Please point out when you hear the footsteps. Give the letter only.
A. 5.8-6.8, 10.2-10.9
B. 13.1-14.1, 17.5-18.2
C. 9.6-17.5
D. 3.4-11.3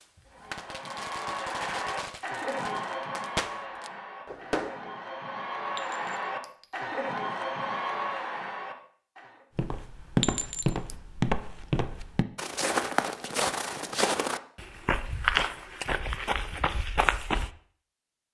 C.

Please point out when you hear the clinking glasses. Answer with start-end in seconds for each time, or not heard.
5.8-6.8, 10.2-10.9.